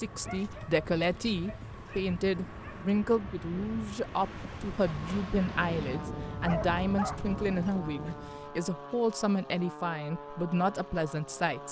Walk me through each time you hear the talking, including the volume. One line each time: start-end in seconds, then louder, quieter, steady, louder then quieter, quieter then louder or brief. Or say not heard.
0.0-11.6 steady.